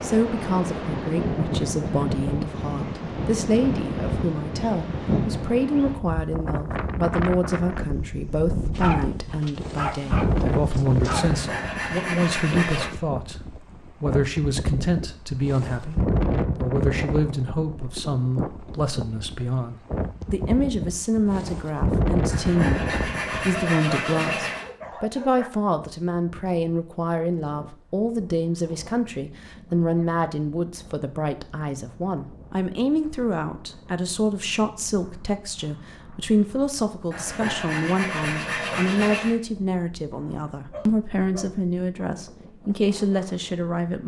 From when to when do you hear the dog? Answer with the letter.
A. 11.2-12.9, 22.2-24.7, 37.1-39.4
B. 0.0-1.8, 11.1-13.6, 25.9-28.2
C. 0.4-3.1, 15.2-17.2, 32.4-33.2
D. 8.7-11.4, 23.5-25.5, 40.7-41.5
D.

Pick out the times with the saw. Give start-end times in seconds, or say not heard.
11.2-12.9, 22.2-24.7, 37.1-39.4.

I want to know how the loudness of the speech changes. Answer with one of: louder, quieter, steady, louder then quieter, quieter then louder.
steady.